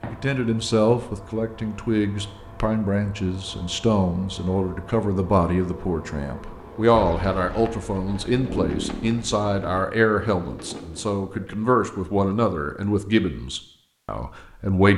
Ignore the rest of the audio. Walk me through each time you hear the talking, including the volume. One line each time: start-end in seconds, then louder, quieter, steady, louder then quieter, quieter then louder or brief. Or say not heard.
0.0-14.9 steady.